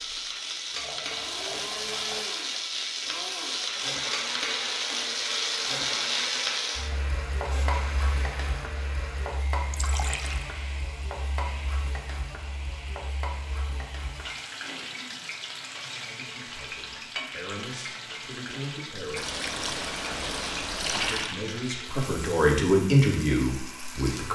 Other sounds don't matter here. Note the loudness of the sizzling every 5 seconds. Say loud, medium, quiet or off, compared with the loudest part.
loud, loud, medium, medium, medium.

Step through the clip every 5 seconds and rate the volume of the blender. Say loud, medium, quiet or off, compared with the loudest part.
loud, loud, medium, medium, medium.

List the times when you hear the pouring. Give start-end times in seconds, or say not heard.
0.7-2.2, 9.7-10.5, 19.1-21.4.